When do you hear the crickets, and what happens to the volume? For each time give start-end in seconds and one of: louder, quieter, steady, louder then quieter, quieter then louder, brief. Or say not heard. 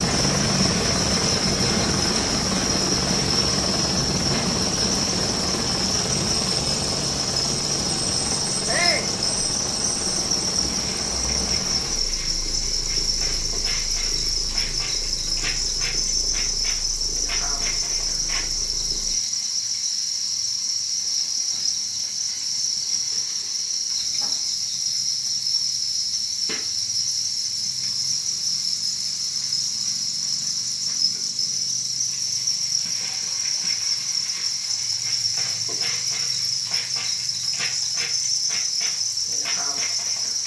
0.0-40.4 steady.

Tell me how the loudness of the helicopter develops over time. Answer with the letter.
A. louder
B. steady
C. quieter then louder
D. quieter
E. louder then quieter
D.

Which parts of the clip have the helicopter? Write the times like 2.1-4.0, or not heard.
0.0-19.1.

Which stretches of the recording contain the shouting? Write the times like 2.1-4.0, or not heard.
8.7-9.2.